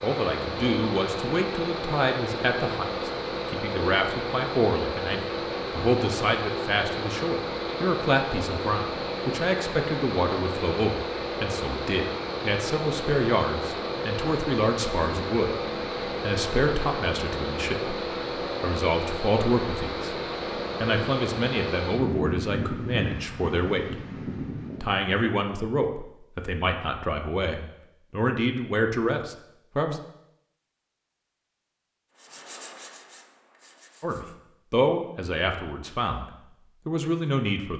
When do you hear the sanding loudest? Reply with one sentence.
The loudest moment of the sanding is at 33 seconds.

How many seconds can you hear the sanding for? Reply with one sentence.
The sanding can be heard for 2 seconds in total.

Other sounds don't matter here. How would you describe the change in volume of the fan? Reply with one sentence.
The loudness of the fan stays about the same.